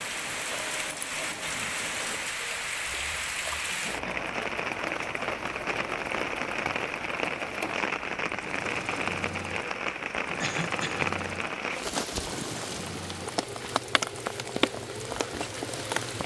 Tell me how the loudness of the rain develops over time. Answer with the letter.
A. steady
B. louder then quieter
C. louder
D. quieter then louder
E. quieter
A.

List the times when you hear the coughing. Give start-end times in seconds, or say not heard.
3.6-4.3, 10.4-11.1.